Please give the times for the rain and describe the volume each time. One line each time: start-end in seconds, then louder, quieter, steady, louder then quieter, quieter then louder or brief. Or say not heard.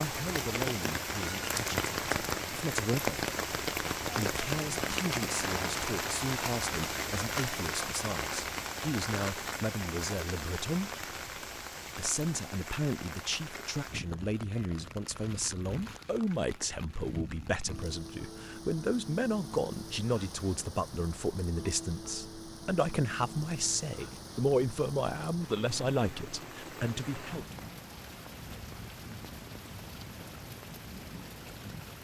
0.0-31.9 quieter.